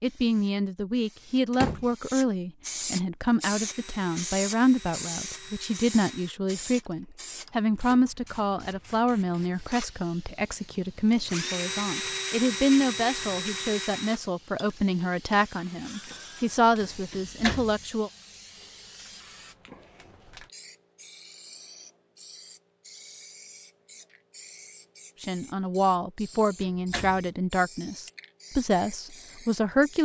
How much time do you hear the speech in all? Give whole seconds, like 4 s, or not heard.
23 s.